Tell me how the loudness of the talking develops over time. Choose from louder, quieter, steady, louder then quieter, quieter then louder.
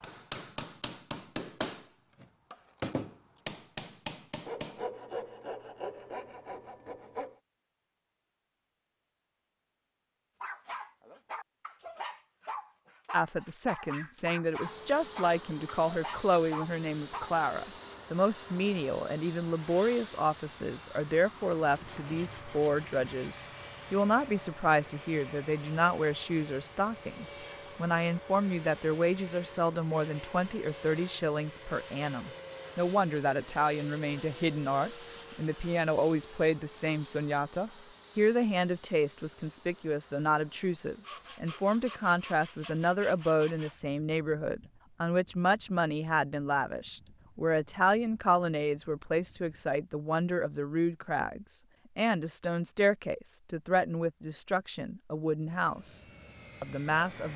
steady.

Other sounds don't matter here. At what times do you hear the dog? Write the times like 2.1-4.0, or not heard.
10.4-17.4.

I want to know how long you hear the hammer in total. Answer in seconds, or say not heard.
5 s.